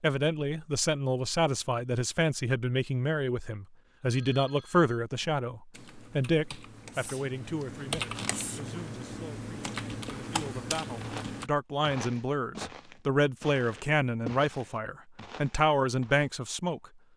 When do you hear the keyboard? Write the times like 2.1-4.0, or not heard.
5.2-11.5.